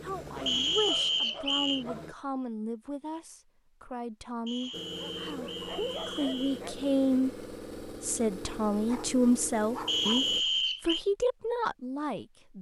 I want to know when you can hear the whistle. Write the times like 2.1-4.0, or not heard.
0.5-1.9, 4.5-6.6, 9.8-11.1.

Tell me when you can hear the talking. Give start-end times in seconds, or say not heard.
0.0-12.5.